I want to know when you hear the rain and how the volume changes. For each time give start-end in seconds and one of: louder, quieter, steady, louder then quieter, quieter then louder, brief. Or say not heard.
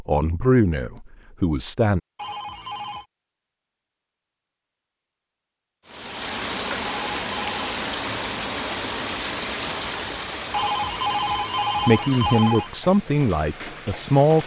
5.8-14.4 quieter.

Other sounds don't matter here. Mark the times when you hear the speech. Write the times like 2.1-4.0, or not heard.
0.0-2.0, 11.8-14.4.